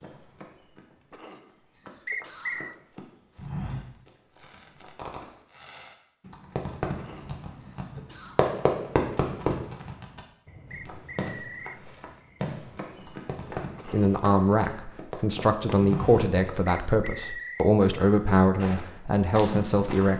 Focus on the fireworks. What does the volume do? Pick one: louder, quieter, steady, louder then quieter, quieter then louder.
louder then quieter.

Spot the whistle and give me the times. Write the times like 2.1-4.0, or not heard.
2.0-2.8, 10.7-11.8, 16.6-17.7.